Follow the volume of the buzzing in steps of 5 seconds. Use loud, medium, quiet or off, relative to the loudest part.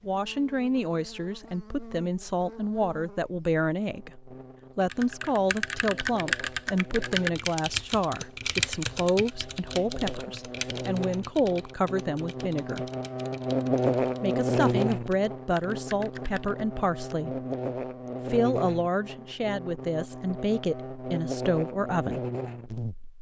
quiet, quiet, loud, medium, medium.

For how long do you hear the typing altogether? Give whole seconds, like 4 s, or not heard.
12 s.